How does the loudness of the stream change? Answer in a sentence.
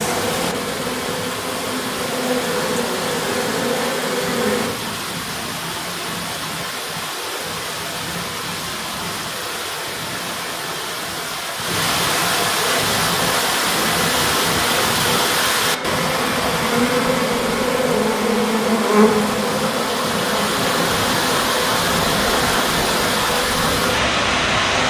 The volume of the stream goes up.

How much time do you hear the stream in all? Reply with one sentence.
The stream can be heard for 25 seconds in total.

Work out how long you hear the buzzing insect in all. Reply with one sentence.
You can hear the buzzing insect for 17 seconds altogether.